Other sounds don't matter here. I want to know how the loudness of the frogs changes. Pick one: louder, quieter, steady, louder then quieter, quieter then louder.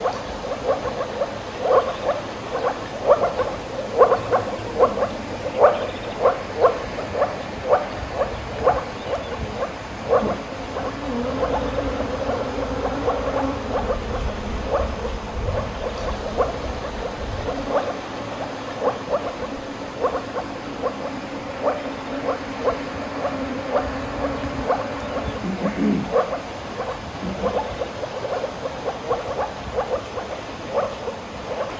quieter.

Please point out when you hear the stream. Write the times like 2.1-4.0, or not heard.
0.0-31.7.